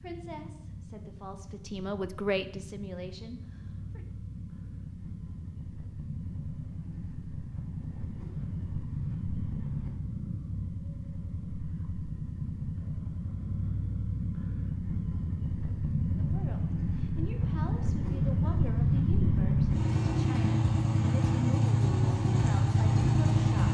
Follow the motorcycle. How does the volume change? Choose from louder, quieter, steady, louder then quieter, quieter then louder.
louder.